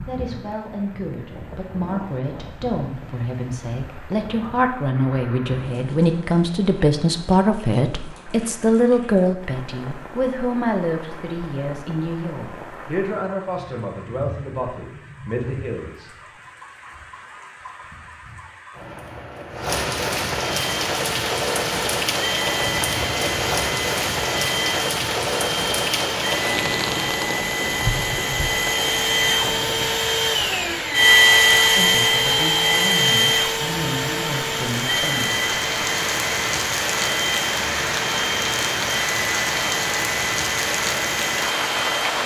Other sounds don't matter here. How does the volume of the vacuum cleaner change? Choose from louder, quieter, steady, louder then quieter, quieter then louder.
louder then quieter.